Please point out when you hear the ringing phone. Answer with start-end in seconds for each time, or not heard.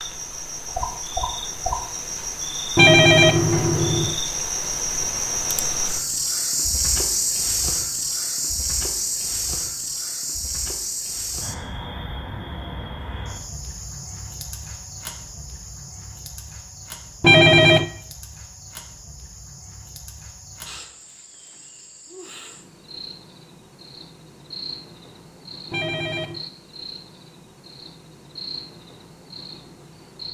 2.8-4.2, 17.2-17.9, 25.7-26.4.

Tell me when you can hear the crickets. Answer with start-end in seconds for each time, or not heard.
0.0-30.2.